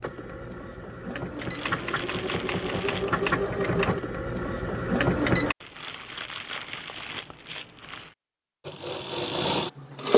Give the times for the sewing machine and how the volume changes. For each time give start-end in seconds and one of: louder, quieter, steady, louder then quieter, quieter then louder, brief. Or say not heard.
0.0-5.5 louder
8.6-10.1 brief.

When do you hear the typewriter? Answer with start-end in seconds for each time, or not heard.
not heard.